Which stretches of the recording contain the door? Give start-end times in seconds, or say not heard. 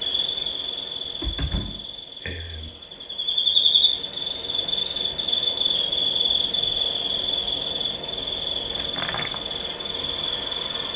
1.1-2.7, 8.7-9.4.